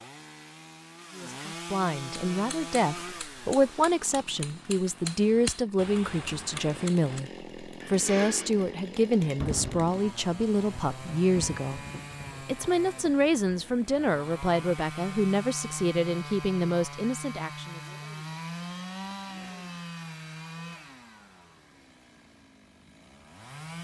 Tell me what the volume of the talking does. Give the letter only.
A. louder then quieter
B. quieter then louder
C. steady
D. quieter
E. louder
C.